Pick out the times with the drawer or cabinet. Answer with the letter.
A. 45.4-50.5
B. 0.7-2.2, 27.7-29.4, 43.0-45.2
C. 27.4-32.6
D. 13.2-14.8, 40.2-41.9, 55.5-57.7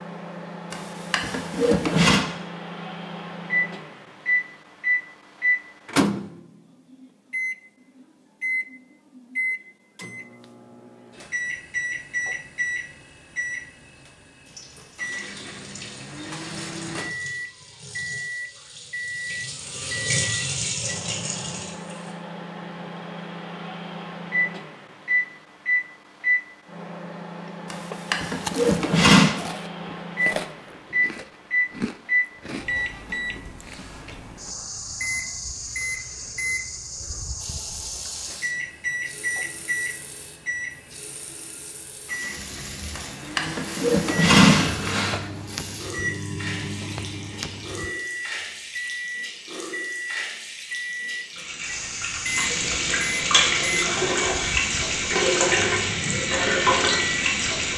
B.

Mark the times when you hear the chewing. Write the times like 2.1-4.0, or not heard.
27.4-32.6.